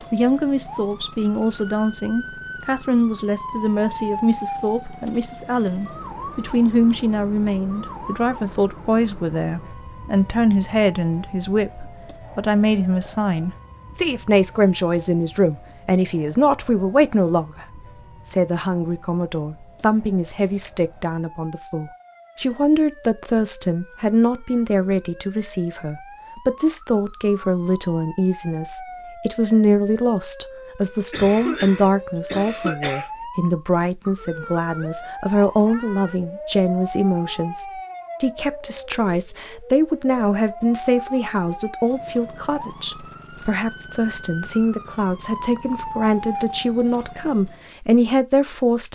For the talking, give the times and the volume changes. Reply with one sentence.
You can hear the talking from 0.1 to 48.9 s, at a steady volume.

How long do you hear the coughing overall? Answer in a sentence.
You can hear the coughing for 2 seconds altogether.